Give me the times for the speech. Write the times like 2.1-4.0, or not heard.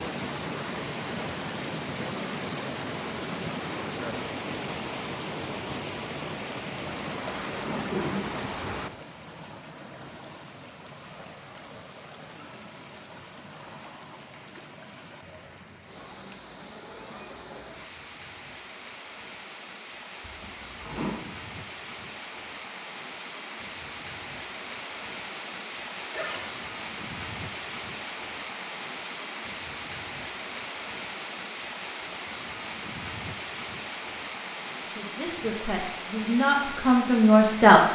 35.0-37.8.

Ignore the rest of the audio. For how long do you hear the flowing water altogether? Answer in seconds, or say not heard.
38 s.